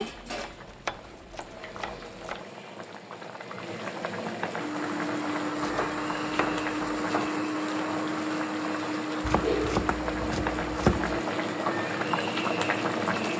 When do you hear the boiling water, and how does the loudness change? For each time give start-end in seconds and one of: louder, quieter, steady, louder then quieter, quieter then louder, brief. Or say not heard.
0.0-13.3 louder.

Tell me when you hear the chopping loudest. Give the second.
11 s.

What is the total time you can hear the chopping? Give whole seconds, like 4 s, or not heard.
6 s.